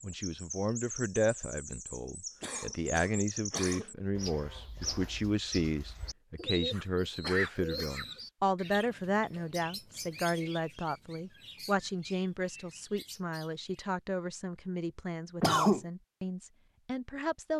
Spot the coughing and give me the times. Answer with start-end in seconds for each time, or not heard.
2.4-4.0, 6.7-8.1, 15.4-15.8.